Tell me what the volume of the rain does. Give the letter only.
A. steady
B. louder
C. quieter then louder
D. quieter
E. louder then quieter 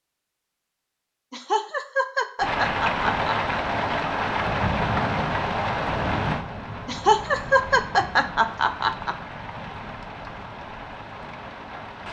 D.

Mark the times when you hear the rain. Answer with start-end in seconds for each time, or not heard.
2.4-12.0.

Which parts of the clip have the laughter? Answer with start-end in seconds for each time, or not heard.
1.3-3.6, 6.8-9.2.